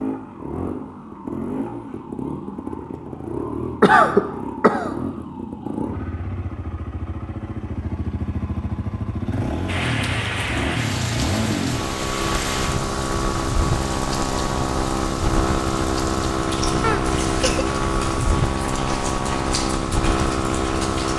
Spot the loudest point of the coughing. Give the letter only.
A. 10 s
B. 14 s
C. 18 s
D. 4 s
D.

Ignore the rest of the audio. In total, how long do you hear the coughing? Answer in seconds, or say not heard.
2 s.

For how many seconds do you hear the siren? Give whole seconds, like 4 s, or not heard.
not heard.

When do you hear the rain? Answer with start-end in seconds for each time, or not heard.
9.7-21.1.